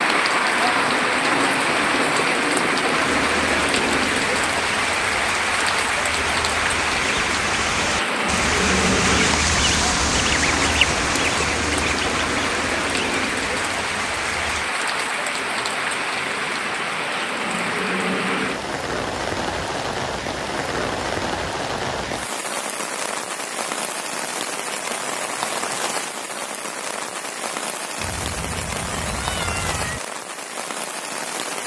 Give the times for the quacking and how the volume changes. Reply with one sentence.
The quacking can be heard from 3.0 to 14.7 s, getting louder then quieter.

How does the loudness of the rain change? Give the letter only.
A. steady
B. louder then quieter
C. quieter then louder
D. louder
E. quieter
E.